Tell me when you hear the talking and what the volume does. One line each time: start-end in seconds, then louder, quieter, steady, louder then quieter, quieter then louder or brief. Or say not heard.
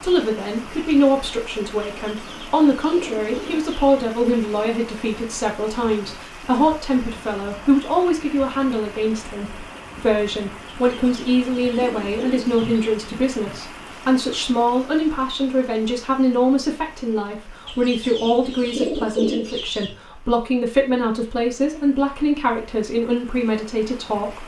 0.0-24.4 steady.